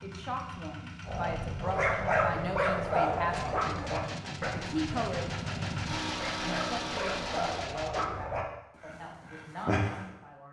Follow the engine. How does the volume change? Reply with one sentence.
The loudness of the engine goes up.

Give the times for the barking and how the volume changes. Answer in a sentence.
The barking can be heard from 1.1 to 10.2 s, getting quieter then louder.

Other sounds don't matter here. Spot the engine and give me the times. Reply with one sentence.
The engine can be heard from 0.0 to 7.7 s.